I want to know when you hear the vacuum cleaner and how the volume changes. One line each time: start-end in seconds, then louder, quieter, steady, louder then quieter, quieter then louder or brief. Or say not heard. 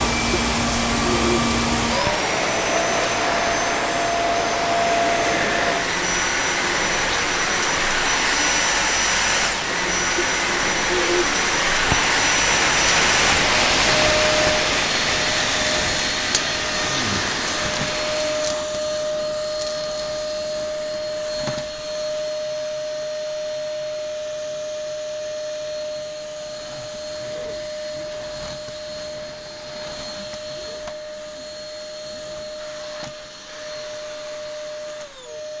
0.0-35.5 quieter.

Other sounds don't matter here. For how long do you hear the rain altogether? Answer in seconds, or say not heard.
19 s.